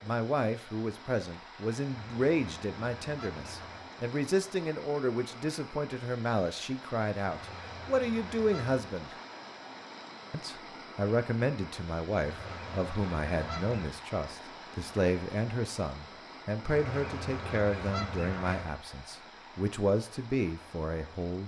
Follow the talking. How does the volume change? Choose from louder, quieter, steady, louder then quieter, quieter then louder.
steady.